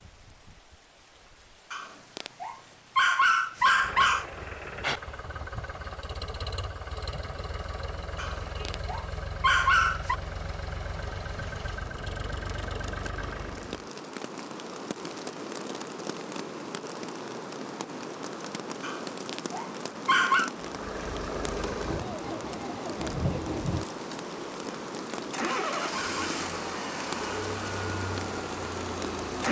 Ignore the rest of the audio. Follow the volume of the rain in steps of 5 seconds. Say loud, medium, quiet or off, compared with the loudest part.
quiet, quiet, medium, loud, loud, loud.